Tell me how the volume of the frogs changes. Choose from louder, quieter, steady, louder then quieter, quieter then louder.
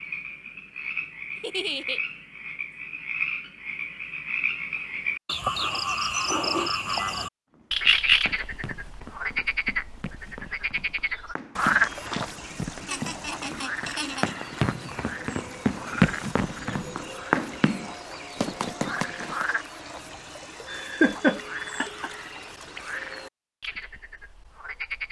louder then quieter.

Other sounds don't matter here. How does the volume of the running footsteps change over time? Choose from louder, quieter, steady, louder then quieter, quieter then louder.
louder.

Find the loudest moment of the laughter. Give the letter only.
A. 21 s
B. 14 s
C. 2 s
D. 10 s
A.